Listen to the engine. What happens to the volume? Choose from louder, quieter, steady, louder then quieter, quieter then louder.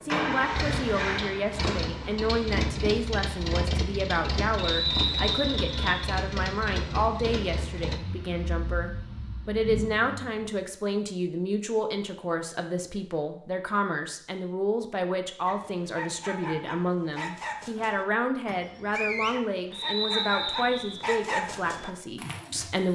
quieter.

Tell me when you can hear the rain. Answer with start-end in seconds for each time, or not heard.
not heard.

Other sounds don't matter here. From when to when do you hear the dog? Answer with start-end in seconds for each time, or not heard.
15.4-22.9.